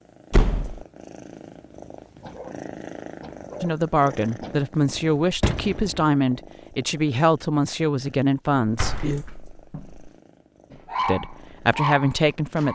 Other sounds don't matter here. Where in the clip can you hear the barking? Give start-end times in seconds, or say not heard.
2.2-4.6, 10.7-12.7.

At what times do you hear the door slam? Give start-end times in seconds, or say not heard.
0.3-0.8, 5.0-6.0, 8.6-10.1.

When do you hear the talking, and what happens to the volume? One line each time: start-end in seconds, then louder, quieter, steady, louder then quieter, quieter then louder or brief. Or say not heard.
3.6-9.0 steady
11.1-12.7 brief.